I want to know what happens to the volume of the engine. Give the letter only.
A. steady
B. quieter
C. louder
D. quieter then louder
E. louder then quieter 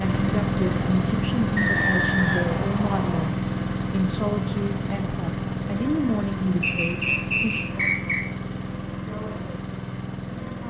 B.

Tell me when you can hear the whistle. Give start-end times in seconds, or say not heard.
1.6-3.3, 6.6-8.2.